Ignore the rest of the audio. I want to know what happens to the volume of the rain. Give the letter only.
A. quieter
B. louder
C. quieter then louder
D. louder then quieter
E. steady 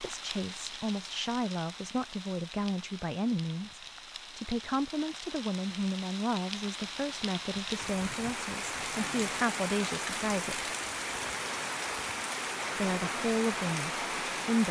B.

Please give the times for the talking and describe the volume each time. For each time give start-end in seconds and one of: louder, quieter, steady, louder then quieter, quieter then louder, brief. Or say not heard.
0.0-10.7 steady
12.8-14.6 brief.